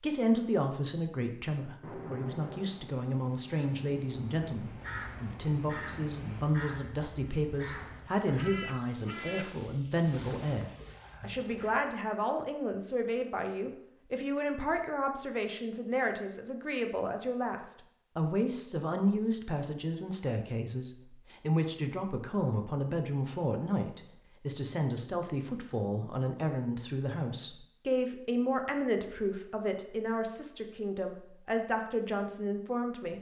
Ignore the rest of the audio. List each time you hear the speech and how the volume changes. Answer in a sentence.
You can hear the speech from 0.0 to 33.1 s, at a steady volume.